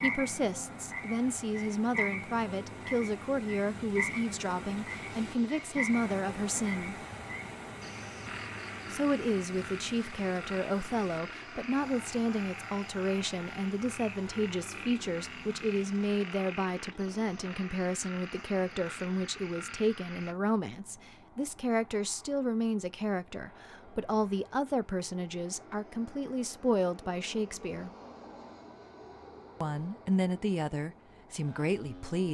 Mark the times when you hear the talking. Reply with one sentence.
You can hear the talking from 0.0 to 7.0 s, from 8.9 to 27.9 s and from 29.6 to 32.2 s.